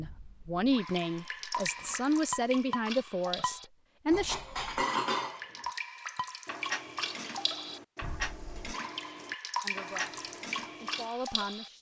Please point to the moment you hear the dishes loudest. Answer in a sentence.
The volume of the dishes peaks at 5 seconds.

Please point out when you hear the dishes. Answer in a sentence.
The dishes can be heard from 1.8 to 11.1 s.